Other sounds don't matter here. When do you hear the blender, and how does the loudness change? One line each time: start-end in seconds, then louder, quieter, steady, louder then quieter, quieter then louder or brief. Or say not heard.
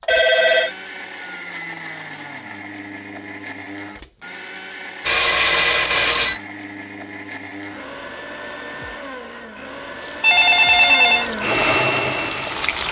0.0-12.8 louder.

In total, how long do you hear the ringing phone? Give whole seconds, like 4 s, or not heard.
3 s.